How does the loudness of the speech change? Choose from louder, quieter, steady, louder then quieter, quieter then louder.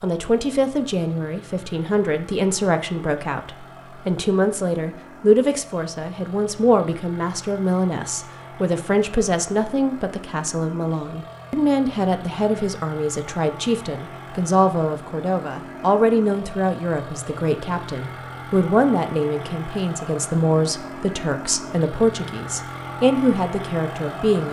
steady.